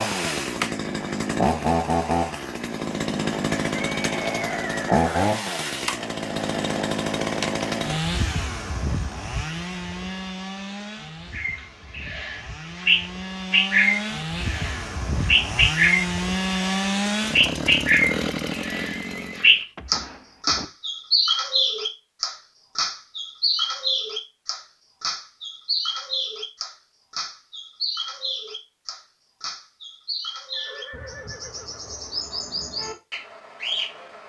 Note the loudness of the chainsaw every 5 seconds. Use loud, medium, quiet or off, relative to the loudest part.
loud, loud, medium, loud, off, off, off.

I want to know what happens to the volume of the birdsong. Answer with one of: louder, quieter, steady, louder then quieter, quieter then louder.
quieter.